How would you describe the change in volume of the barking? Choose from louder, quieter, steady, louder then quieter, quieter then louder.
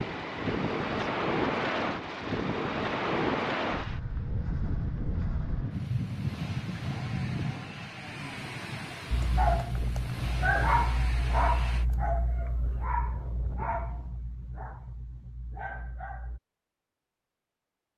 quieter.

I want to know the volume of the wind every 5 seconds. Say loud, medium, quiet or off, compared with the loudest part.
loud, medium, quiet, off.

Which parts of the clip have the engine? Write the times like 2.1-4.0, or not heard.
0.0-11.8.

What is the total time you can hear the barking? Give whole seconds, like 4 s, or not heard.
7 s.